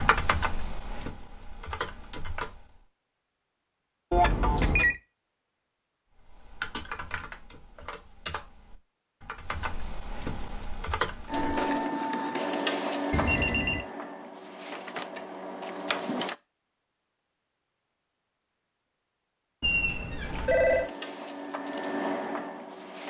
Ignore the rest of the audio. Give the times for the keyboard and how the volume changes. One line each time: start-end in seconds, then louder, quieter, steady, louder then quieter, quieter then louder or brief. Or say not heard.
0.0-2.6 brief
6.2-11.7 quieter then louder.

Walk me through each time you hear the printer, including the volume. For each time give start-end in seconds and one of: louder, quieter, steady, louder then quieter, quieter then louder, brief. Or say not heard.
11.2-16.4 quieter
20.2-23.0 brief.